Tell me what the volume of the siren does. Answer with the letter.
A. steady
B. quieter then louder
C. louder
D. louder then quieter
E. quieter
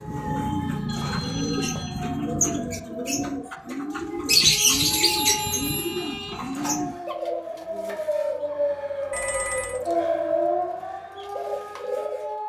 C.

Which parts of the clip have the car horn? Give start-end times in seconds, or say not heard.
5.2-6.4.